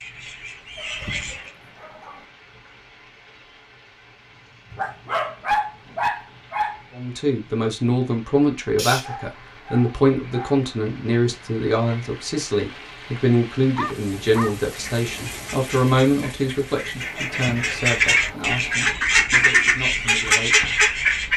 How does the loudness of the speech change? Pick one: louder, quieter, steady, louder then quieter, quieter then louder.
quieter.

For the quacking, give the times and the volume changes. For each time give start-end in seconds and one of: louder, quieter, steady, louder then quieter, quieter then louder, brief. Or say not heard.
0.0-1.6 brief
14.7-21.3 louder.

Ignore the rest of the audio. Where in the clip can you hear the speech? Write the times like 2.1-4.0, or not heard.
7.0-21.3.